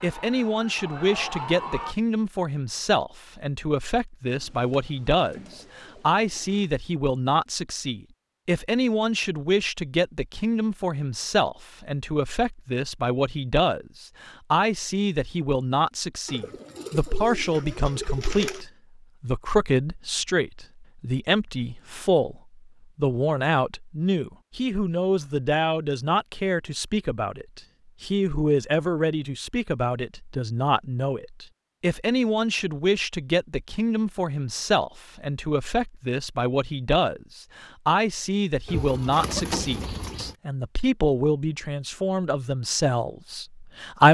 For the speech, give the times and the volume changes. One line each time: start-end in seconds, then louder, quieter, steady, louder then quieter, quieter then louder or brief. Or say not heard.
0.0-44.0 steady.